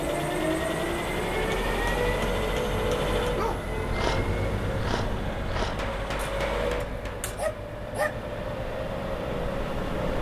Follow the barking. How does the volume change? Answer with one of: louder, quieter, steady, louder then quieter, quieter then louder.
quieter then louder.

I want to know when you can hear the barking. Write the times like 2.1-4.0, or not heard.
3.4-8.2.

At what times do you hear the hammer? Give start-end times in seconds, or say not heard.
1.5-3.4, 5.6-7.2.